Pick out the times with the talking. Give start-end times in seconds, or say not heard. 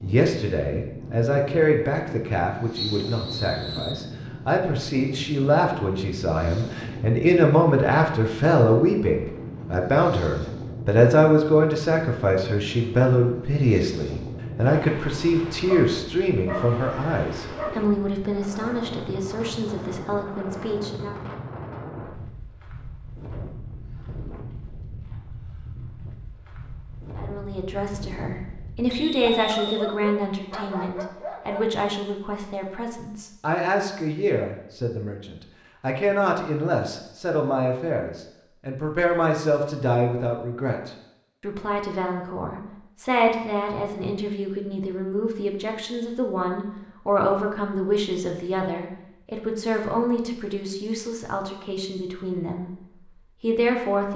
0.0-21.2, 27.1-52.7, 53.4-54.1.